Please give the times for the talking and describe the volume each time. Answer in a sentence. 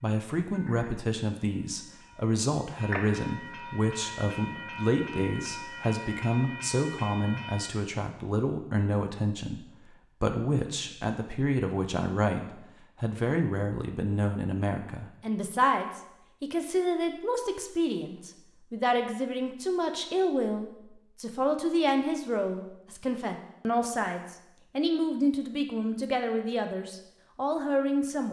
The talking can be heard from 0.0 to 28.2 s, at a steady volume.